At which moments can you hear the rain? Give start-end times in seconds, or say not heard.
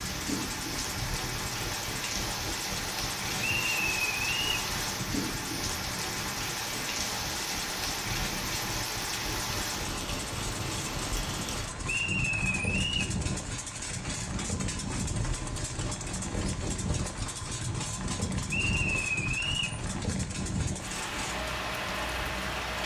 0.0-22.8.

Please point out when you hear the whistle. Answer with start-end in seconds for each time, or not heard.
3.4-4.7, 11.8-13.2, 18.5-19.8.